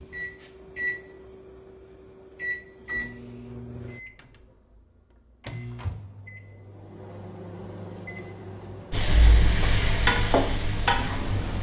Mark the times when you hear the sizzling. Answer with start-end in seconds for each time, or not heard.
8.9-11.5.